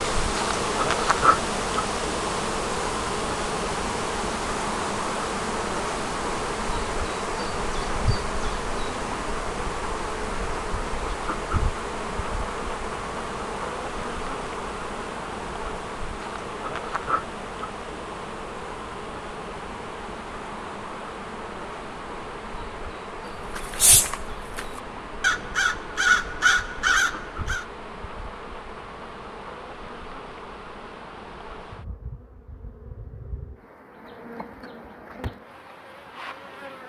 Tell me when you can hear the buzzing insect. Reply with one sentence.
The buzzing insect can be heard from 0.0 to 36.8 s.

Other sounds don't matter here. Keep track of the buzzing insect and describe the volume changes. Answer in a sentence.
The volume of the buzzing insect goes down.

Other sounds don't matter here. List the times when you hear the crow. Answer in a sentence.
The crow can be heard from 23.6 to 27.6 s.